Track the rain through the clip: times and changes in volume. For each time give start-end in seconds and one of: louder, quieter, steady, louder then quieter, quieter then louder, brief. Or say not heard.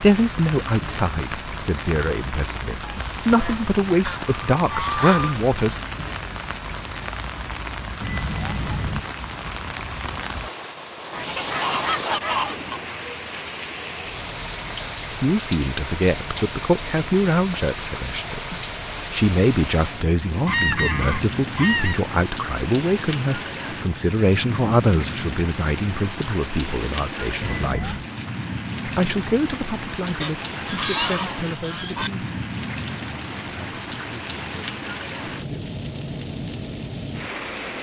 0.0-37.7 steady.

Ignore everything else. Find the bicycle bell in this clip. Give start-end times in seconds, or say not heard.
8.0-9.0, 27.4-28.1.